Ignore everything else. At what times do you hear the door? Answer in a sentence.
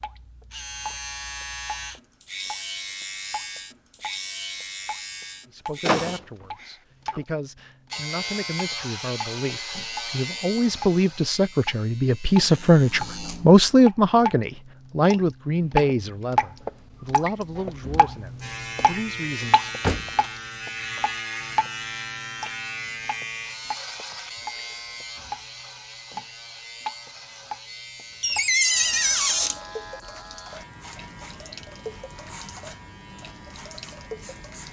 The door can be heard from 5.8 to 7.2 s, from 19.4 to 20.2 s and from 28.2 to 29.6 s.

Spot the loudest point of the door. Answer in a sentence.
The volume of the door peaks at 29 seconds.